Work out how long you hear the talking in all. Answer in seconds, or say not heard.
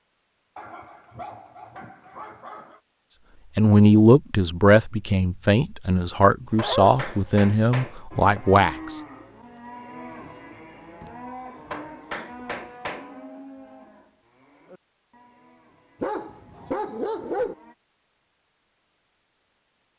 5 s.